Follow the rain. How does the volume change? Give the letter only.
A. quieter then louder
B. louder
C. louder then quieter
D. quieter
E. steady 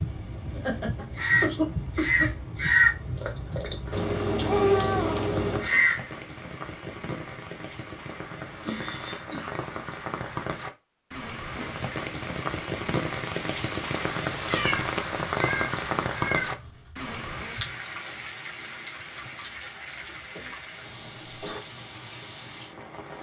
C.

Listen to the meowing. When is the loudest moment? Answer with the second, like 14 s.
5 s.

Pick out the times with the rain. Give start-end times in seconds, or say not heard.
0.0-23.1.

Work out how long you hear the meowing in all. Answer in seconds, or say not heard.
4 s.